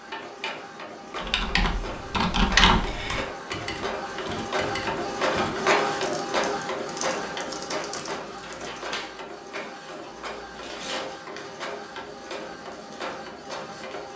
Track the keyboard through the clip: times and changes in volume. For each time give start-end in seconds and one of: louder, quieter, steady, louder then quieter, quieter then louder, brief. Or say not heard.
1.1-9.0 quieter.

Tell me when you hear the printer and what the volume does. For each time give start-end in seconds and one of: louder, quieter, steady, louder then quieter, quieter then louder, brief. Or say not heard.
0.0-14.1 louder then quieter.